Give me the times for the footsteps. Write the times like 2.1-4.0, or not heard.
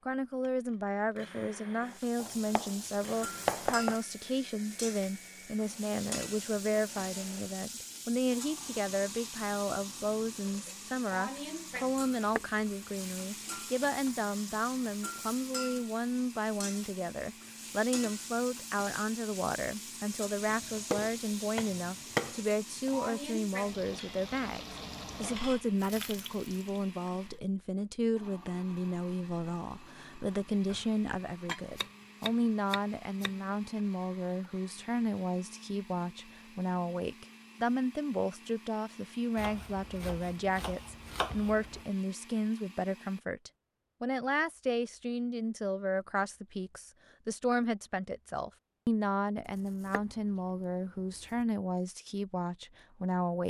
not heard.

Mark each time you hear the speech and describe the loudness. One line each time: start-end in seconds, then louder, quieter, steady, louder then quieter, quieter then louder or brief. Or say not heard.
0.1-53.4 steady.